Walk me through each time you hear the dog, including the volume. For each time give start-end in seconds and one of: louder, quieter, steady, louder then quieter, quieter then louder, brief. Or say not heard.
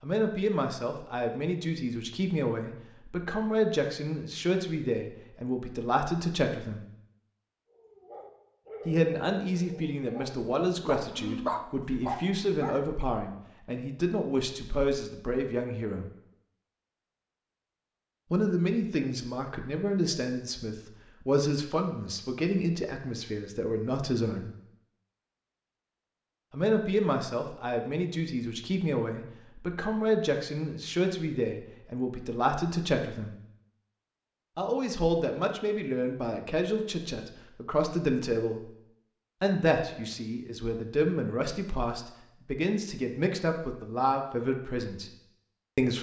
7.7-12.8 louder.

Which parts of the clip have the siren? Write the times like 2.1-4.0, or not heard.
not heard.